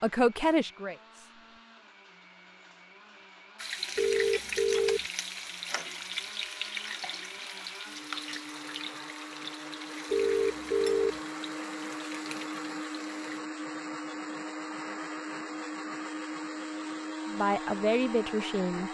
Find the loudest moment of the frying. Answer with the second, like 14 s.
4 s.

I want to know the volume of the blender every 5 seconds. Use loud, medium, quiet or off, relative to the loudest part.
quiet, medium, loud, loud.